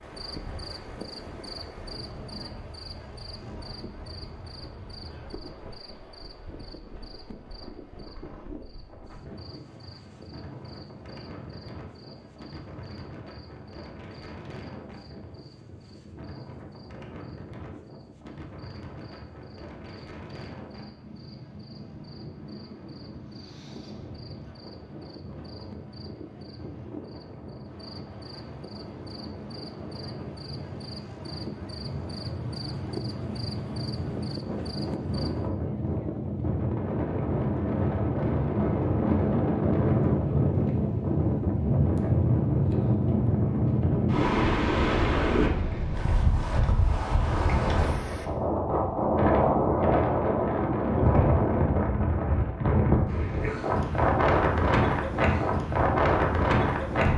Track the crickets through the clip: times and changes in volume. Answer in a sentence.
You can hear the crickets from 0.0 to 35.5 s, getting quieter then louder.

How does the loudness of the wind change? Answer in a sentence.
The volume of the wind goes up.